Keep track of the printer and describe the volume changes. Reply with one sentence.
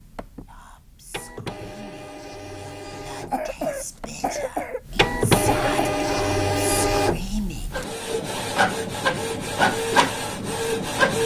The loudness of the printer goes up.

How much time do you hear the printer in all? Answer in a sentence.
You can hear the printer for 11 seconds altogether.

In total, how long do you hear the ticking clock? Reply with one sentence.
You can't hear the ticking clock here.